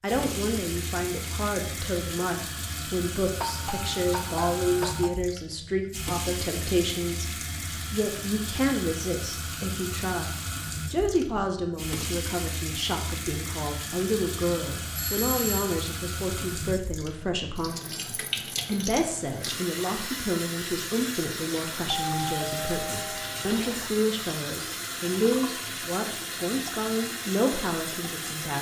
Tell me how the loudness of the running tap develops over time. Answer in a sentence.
The volume of the running tap stays about the same.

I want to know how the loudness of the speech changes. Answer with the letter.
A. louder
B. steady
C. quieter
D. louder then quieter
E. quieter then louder
B.